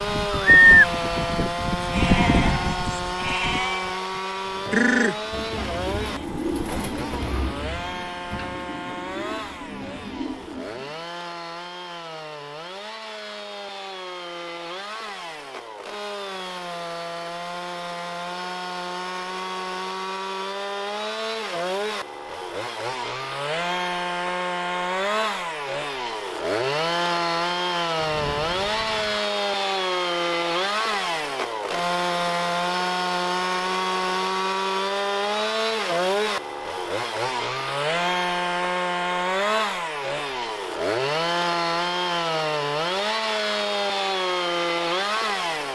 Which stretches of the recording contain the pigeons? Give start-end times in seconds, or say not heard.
4.4-11.0.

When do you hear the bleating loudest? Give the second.
1 s.